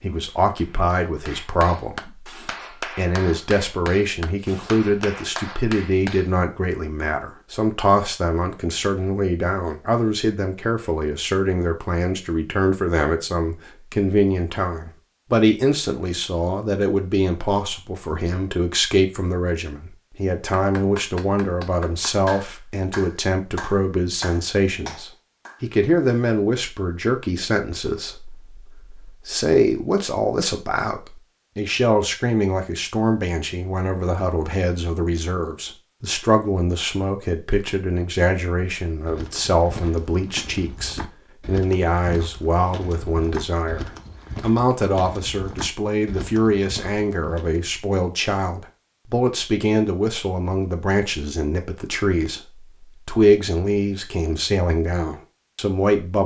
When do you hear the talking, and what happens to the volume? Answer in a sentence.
The talking can be heard from 0.0 to 56.2 s, at a steady volume.